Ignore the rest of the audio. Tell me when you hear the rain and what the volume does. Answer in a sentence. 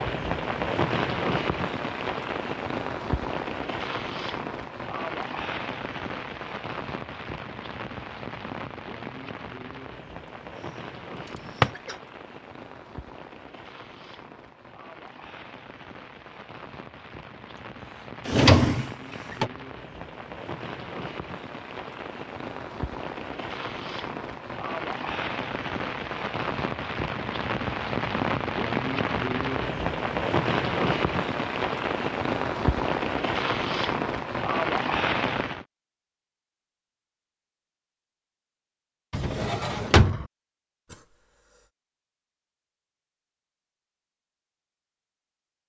The rain can be heard from 0.0 to 35.6 s, getting quieter then louder.